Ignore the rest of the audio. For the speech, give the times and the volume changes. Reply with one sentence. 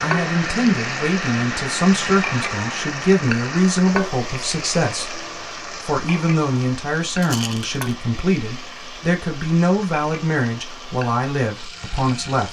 The speech can be heard from 0.0 to 12.4 s, at a steady volume.